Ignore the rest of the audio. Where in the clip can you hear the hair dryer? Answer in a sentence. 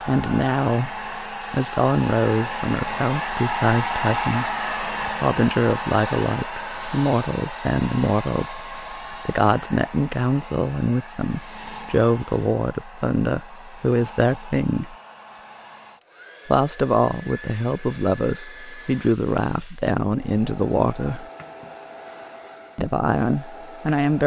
You can hear the hair dryer from 0.0 to 24.2 s.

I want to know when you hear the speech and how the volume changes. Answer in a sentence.
You can hear the speech from 0.1 to 14.9 s, at a steady volume; from 16.4 to 21.2 s, at a steady volume; and briefly from 22.8 to 24.2 s.